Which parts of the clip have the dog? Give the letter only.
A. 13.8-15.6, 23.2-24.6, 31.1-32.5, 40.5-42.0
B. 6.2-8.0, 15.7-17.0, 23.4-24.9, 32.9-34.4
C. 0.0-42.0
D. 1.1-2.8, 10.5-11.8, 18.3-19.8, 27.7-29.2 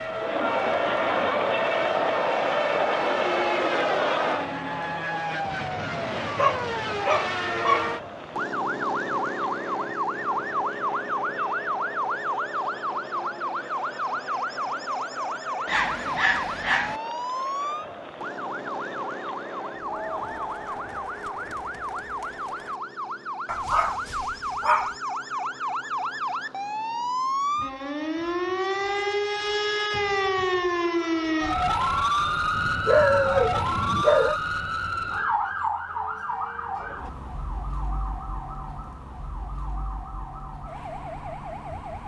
B.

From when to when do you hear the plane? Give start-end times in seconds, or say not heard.
not heard.